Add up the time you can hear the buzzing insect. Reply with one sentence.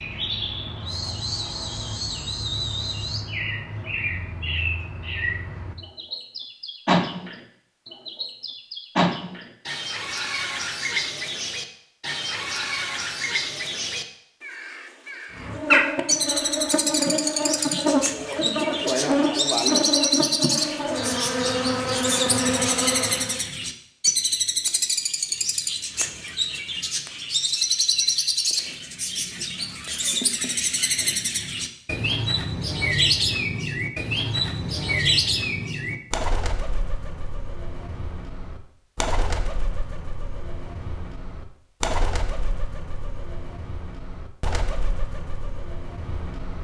You can hear the buzzing insect for 8 seconds altogether.